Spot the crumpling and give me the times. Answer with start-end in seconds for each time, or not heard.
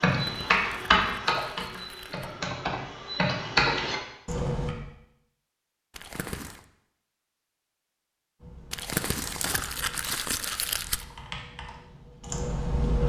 0.2-2.3, 5.9-6.7, 8.7-11.1.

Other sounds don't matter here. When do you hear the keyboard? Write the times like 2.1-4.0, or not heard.
0.0-4.8, 8.4-13.0.